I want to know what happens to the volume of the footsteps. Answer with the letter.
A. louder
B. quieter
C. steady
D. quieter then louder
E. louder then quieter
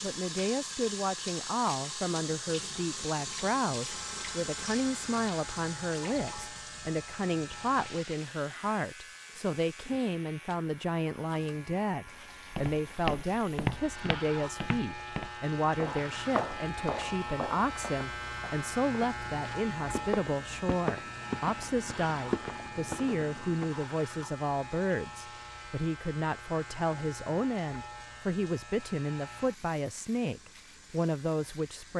D.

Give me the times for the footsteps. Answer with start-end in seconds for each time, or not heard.
12.5-23.7.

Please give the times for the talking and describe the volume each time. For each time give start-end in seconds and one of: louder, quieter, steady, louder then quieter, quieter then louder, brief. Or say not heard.
0.0-31.9 steady.